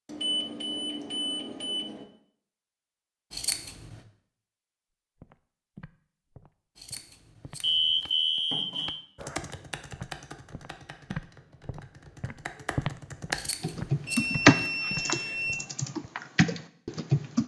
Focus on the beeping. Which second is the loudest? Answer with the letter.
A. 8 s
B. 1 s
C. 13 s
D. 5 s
A.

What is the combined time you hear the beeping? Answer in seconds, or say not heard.
5 s.